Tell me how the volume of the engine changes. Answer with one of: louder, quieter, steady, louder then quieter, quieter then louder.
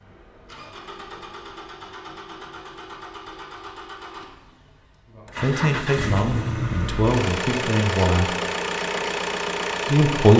louder.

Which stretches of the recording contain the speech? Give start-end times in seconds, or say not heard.
5.4-8.3, 9.8-10.3.